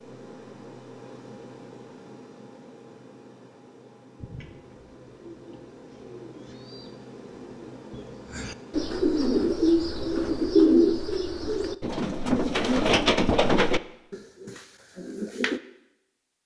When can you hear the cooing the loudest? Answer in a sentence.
The volume of the cooing peaks at 11 seconds.